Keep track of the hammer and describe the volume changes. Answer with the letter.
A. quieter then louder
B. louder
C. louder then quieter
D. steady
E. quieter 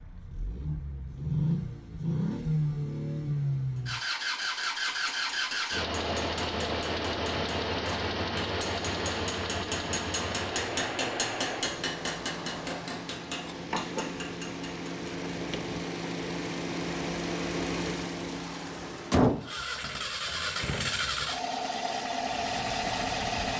C.